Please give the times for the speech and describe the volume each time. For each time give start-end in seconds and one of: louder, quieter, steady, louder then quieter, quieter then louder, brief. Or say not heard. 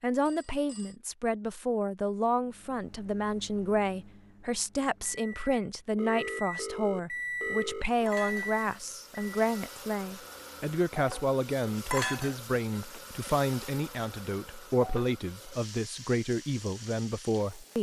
0.0-17.7 steady.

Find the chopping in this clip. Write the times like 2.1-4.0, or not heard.
not heard.